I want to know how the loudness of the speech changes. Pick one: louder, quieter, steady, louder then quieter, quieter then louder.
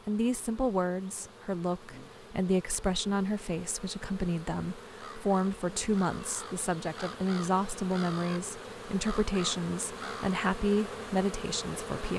steady.